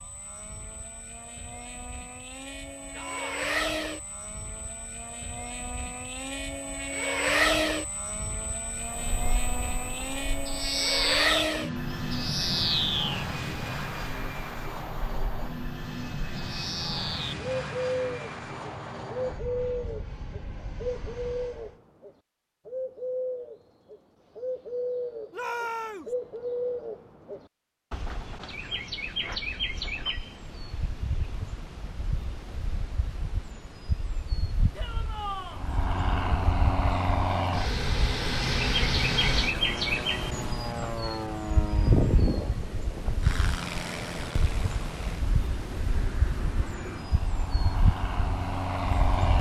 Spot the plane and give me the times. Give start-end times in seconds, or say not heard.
0.0-21.8, 35.5-49.3.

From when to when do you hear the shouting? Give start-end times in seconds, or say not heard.
3.0-3.5, 25.3-26.1, 34.8-35.6.